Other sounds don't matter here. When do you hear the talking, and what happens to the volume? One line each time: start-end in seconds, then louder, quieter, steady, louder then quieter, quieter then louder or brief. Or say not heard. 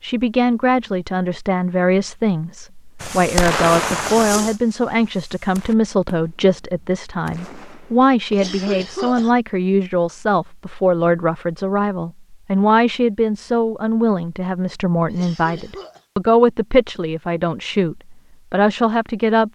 0.0-19.4 steady.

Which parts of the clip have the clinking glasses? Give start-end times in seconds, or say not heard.
not heard.